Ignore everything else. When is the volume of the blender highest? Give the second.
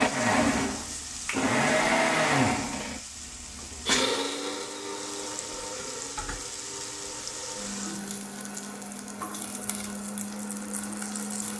2 s.